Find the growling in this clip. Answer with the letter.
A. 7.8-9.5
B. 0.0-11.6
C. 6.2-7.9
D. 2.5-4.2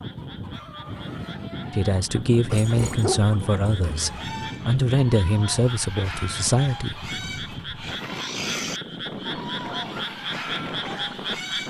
D.